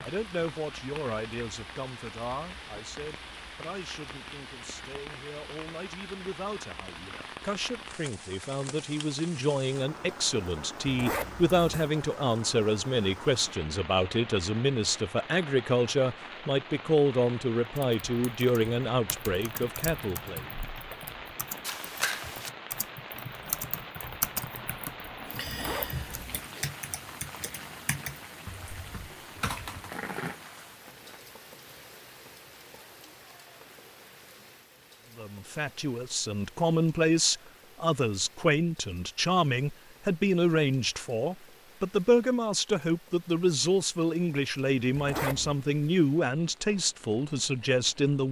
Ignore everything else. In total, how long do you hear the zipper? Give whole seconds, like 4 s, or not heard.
3 s.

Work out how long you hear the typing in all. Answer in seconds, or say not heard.
12 s.